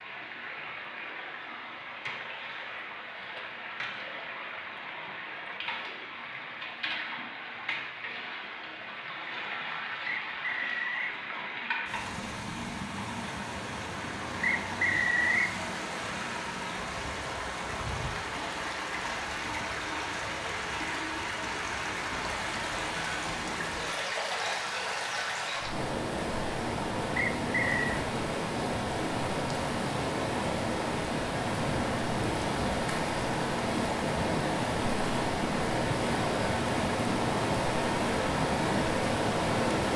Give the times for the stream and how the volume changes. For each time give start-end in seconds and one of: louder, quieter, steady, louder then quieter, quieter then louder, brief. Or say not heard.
0.0-39.9 louder.